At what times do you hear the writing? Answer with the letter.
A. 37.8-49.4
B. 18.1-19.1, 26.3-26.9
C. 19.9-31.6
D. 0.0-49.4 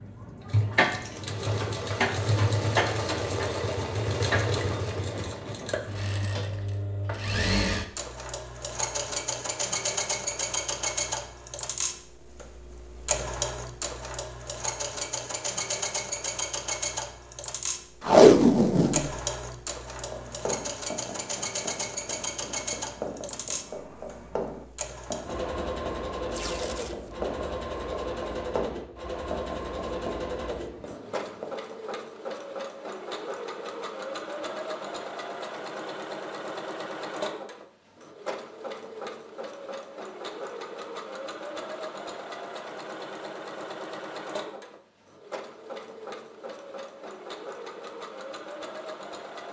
C.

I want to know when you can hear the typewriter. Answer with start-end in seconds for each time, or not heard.
not heard.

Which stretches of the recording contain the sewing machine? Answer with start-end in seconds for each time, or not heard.
0.0-49.4.